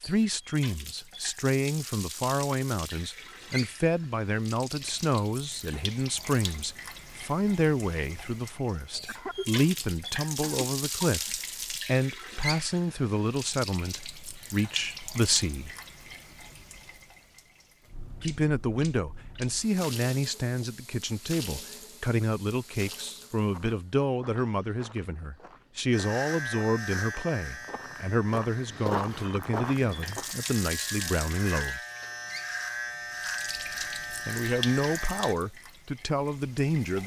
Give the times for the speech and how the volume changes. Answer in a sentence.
The speech can be heard from 0.0 to 15.7 s, at a steady volume; from 18.2 to 31.8 s, at a steady volume; and briefly from 34.2 to 37.0 s.